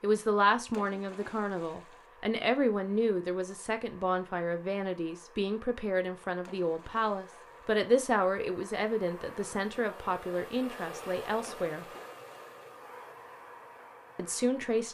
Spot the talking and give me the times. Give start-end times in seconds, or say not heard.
0.0-11.8, 14.2-14.8.